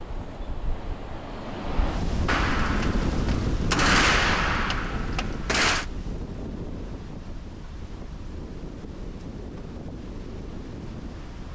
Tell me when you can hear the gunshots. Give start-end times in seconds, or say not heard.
2.2-5.8.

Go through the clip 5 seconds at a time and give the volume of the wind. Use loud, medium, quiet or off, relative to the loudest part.
loud, medium, medium.